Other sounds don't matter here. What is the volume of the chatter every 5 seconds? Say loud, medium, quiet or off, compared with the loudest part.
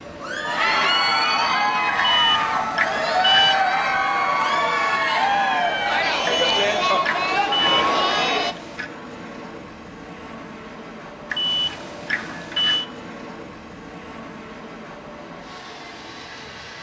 loud, loud, off, off.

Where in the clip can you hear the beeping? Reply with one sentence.
You can hear the beeping from 1.9 to 3.6 s, from 6.2 to 8.9 s and from 11.3 to 12.8 s.